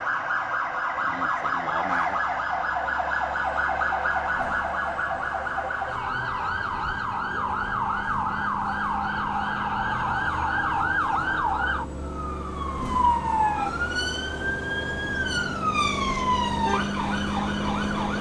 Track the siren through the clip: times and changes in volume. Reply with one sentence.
You can hear the siren from 0.0 to 18.1 s, at a steady volume.